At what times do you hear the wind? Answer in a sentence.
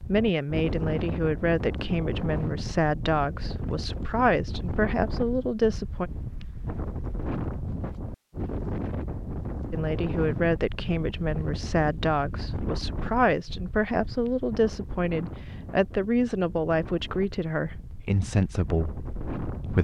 The wind can be heard from 0.0 to 19.7 s.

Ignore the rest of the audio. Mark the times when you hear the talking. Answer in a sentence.
You can hear the talking from 0.0 to 6.1 s and from 9.7 to 19.7 s.